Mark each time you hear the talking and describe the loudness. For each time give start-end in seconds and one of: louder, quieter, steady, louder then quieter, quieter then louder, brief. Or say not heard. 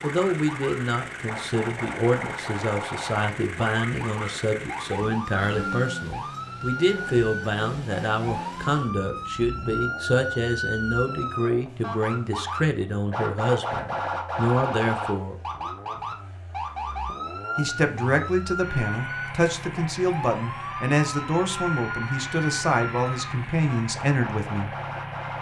0.0-15.3 steady
17.6-24.7 steady.